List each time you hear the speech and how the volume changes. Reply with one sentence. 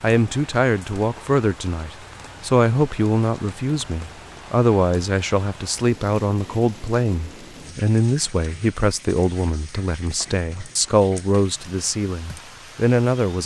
The speech can be heard from 0.0 to 13.4 s, at a steady volume.